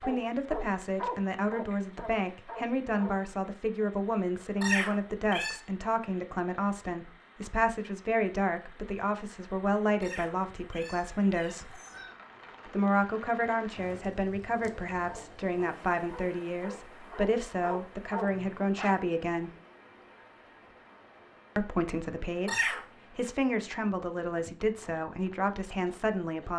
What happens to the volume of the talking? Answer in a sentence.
The volume of the talking stays about the same.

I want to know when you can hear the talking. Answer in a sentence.
You can hear the talking from 0.0 to 11.8 s, from 12.7 to 19.5 s and from 21.6 to 26.5 s.